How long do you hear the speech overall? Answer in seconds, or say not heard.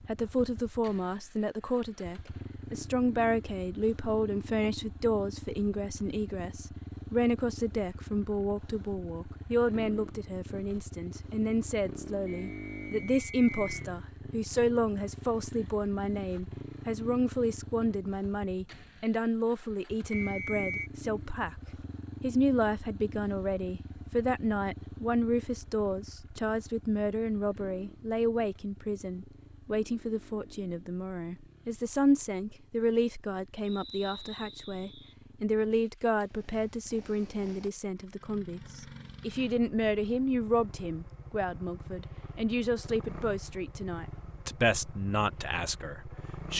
46 s.